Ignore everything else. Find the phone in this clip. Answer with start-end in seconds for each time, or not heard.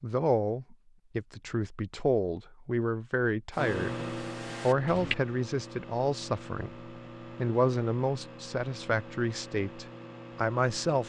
not heard.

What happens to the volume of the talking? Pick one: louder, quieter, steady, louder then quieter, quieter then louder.
steady.